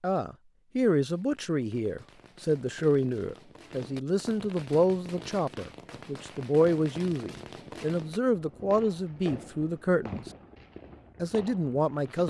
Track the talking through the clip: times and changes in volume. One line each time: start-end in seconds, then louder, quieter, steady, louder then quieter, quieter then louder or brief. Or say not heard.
0.0-10.2 steady
11.2-12.2 brief.